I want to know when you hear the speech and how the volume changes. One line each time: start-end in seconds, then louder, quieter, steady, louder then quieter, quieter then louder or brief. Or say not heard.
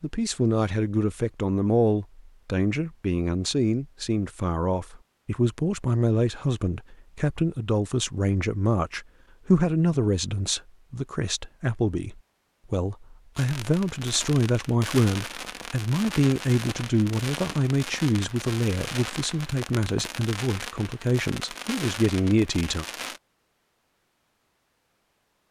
0.0-22.9 steady.